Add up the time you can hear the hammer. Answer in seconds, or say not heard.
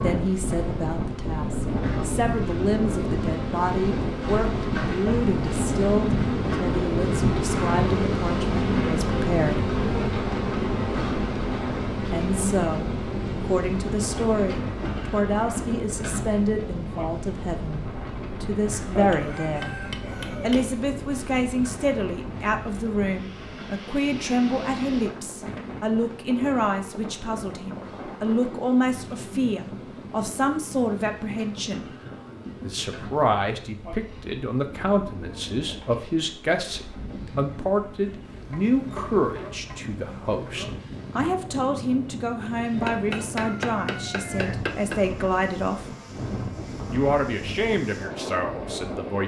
4 s.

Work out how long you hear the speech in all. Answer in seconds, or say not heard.
44 s.